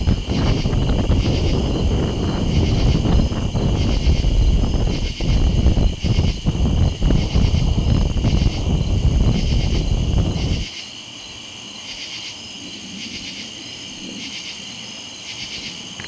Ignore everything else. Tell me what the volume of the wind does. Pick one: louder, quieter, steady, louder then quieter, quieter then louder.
steady.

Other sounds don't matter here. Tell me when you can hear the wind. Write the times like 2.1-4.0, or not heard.
0.0-10.7.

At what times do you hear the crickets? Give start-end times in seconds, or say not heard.
0.0-16.0.